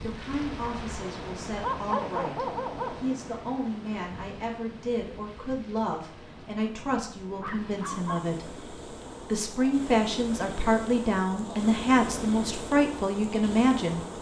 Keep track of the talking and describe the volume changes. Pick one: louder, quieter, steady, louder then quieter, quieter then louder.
louder.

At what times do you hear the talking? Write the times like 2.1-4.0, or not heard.
0.0-14.0.